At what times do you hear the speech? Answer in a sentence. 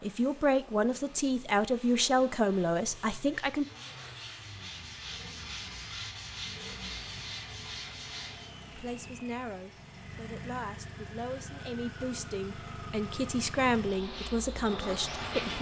The speech can be heard from 0.0 to 3.6 s and from 8.7 to 15.5 s.